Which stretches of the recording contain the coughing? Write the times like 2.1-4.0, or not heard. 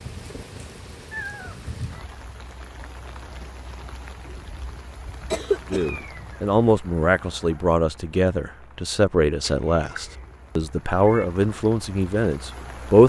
5.3-6.3.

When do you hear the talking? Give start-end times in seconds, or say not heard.
5.7-13.0.